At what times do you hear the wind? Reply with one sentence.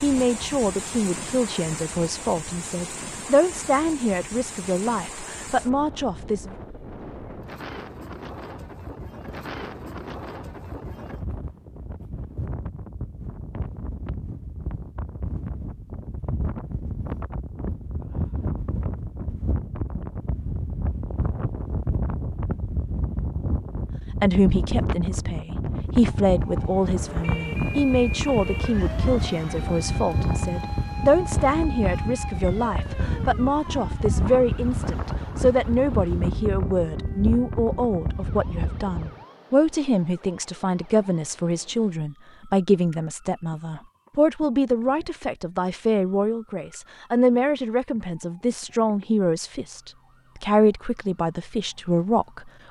You can hear the wind from 0.0 to 39.2 s.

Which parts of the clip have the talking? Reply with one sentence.
The talking can be heard from 0.0 to 6.5 s and from 24.2 to 52.6 s.